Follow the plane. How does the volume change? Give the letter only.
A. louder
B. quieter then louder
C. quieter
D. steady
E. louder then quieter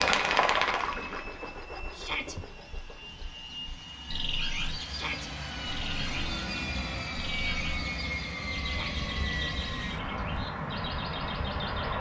A.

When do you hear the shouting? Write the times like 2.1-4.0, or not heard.
1.9-2.4, 4.8-5.3, 8.6-9.1.